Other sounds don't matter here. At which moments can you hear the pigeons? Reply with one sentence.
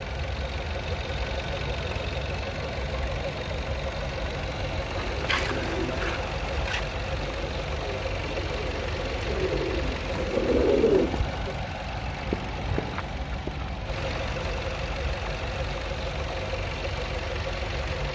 You can hear the pigeons from 4.9 to 11.6 s.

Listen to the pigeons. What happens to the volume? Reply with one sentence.
The loudness of the pigeons goes down, then up.